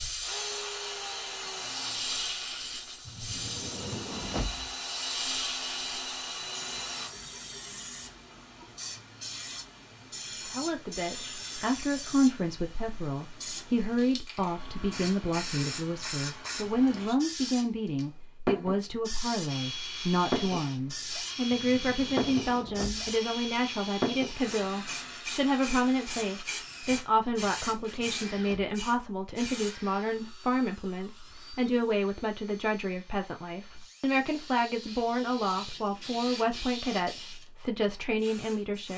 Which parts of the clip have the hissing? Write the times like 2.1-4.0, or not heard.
0.0-29.8, 34.0-38.9.